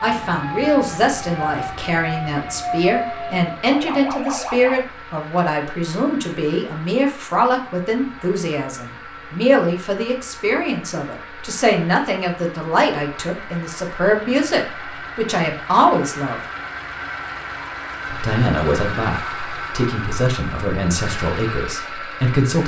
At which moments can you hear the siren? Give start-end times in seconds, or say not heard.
0.0-4.8.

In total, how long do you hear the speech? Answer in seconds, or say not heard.
21 s.